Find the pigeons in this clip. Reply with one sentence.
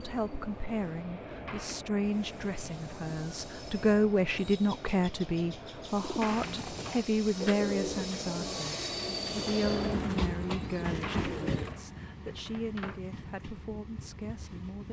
The pigeons can be heard from 6.0 to 11.8 s.